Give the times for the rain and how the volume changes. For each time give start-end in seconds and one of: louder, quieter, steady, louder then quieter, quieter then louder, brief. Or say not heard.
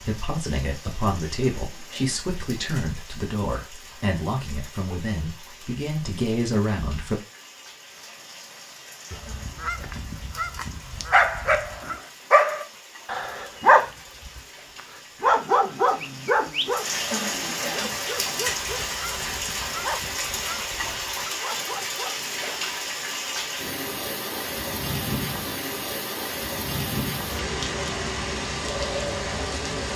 0.0-29.9 louder.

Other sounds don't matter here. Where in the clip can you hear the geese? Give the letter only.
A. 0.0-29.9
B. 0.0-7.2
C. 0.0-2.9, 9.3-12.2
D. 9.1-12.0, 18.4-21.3
D.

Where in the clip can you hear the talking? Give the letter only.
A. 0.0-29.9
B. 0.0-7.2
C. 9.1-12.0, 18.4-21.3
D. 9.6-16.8
B.